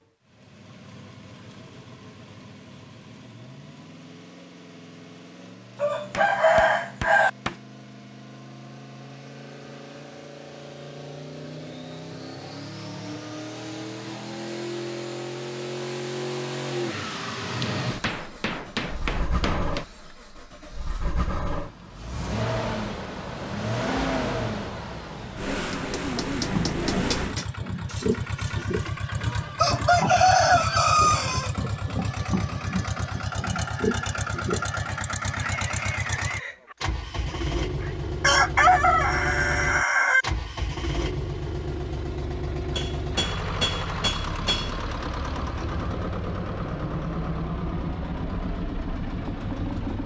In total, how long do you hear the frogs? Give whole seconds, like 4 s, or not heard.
not heard.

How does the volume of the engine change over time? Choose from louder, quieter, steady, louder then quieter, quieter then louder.
louder.